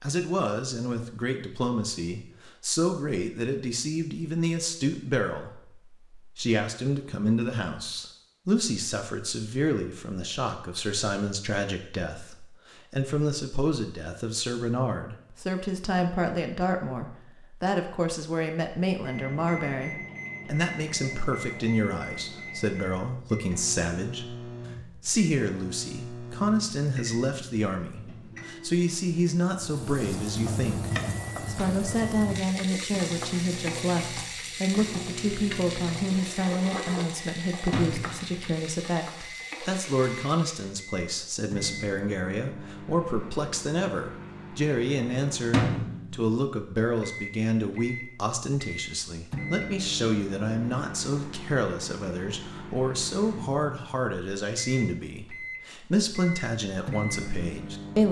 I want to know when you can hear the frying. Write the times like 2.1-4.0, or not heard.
29.5-40.8.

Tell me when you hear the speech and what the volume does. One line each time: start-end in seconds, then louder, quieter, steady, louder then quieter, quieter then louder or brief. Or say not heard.
0.0-58.0 steady.